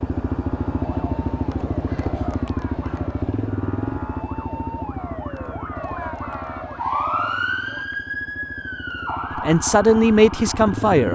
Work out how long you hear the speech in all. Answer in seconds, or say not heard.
2 s.